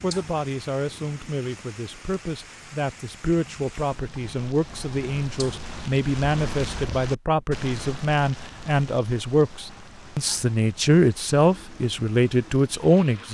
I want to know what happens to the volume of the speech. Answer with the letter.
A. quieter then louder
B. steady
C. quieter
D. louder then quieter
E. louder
E.